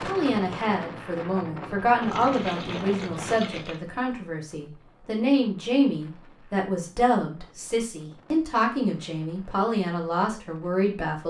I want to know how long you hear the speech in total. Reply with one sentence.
The speech can be heard for 11 seconds in total.